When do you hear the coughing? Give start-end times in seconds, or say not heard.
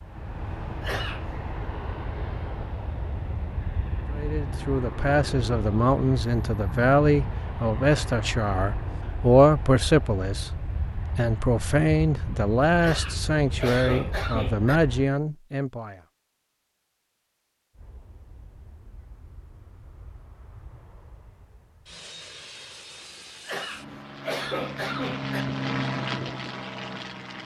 0.8-1.2, 12.8-14.8, 23.4-25.4.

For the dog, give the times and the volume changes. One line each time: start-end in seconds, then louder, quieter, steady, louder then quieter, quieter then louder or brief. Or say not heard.
not heard.